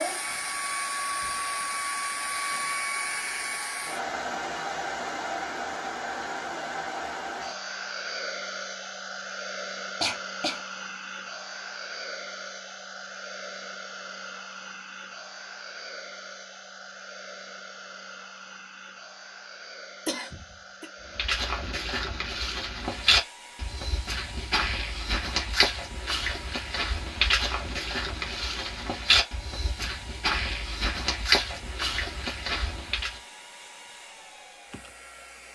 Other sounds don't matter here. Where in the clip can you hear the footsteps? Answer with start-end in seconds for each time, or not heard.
21.1-33.2.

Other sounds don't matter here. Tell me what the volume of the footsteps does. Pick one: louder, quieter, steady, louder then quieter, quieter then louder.
steady.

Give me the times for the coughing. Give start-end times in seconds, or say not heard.
10.0-10.7, 20.1-20.9.